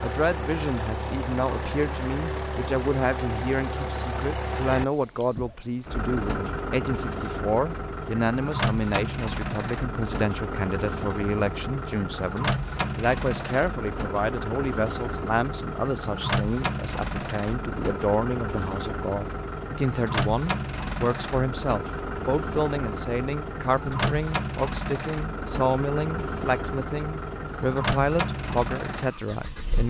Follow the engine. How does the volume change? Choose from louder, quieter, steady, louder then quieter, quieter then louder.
steady.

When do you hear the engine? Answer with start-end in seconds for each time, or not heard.
0.0-29.8.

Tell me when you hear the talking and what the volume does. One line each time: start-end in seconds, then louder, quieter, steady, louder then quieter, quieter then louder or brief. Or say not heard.
0.0-29.8 steady.